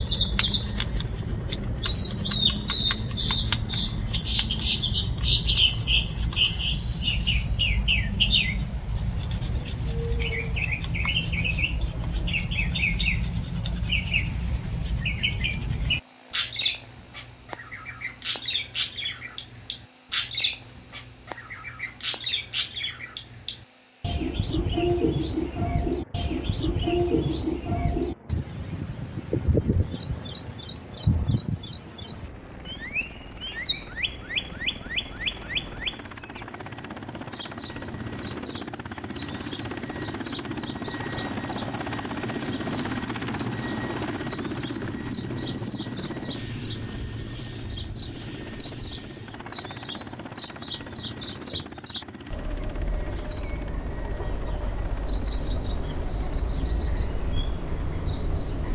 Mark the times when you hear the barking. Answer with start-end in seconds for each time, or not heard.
not heard.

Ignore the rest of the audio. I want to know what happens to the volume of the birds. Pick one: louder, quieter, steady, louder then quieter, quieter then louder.
quieter.